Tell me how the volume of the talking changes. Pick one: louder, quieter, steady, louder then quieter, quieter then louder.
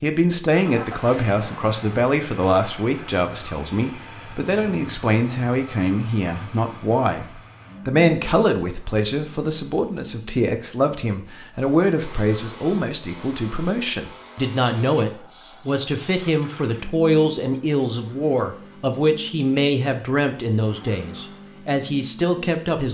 steady.